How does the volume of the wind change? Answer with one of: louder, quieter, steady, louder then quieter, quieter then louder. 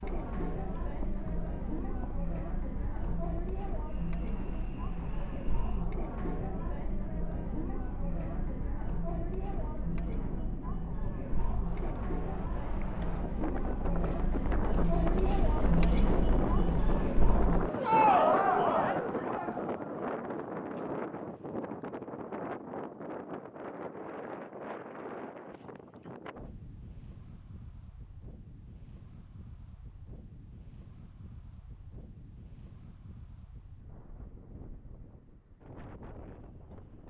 louder then quieter.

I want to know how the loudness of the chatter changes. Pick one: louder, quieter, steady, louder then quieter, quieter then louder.
louder.